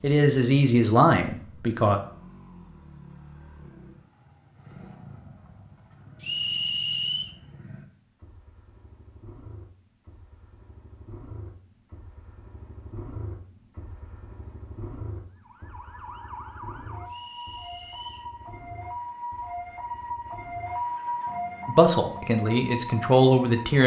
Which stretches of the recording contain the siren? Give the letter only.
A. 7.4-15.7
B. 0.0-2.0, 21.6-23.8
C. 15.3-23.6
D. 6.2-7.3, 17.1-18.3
C.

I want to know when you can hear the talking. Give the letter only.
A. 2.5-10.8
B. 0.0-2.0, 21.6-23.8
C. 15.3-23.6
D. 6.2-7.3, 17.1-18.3
B.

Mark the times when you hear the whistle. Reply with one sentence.
The whistle can be heard from 6.2 to 7.3 s and from 17.1 to 18.3 s.